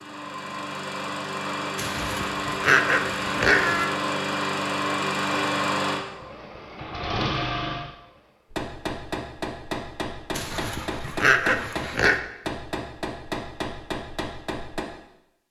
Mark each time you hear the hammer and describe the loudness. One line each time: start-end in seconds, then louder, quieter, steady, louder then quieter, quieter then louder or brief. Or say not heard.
8.5-14.8 steady.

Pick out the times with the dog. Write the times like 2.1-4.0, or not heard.
1.8-3.9, 10.3-12.2.